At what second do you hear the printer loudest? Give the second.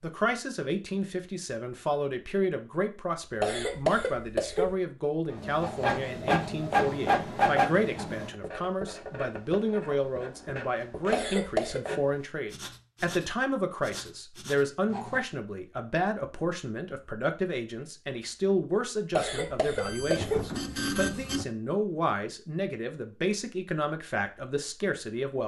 7 s.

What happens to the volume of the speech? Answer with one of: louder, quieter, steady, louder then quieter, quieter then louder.
steady.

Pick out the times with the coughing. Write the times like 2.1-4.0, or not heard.
3.4-4.8, 11.1-11.8, 19.1-20.5.